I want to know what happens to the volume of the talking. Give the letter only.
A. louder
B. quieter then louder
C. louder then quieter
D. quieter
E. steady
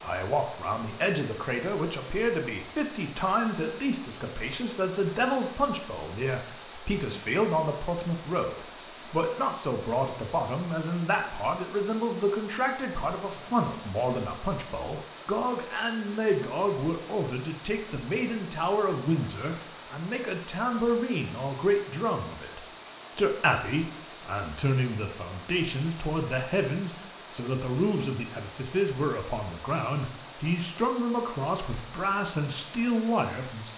E.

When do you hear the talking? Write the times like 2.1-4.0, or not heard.
0.0-33.7.